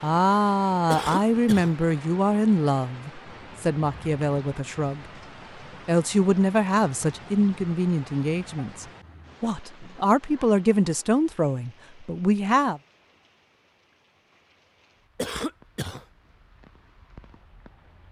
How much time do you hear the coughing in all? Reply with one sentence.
You can hear the coughing for 2 seconds altogether.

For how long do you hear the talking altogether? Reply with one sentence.
The talking can be heard for 12 seconds in total.